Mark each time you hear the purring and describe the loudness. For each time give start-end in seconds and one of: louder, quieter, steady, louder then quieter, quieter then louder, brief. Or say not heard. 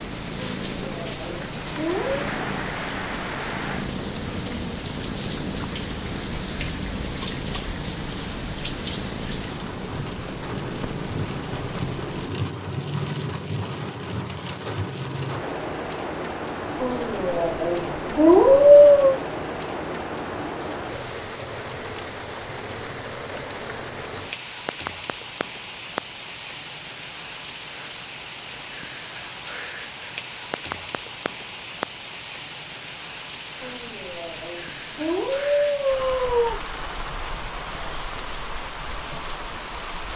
0.0-12.3 steady.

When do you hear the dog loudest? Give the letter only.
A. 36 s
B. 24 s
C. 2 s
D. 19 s
D.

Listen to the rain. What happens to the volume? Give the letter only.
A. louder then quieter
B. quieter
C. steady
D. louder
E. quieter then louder
C.